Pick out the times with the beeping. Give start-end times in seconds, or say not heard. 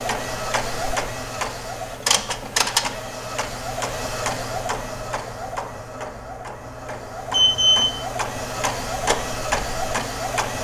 7.3-8.0.